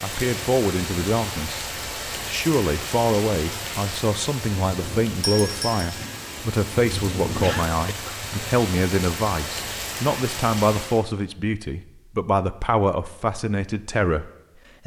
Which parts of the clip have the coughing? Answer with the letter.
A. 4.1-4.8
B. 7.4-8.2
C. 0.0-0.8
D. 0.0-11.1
B.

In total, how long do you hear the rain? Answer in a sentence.
You can hear the rain for 11 seconds altogether.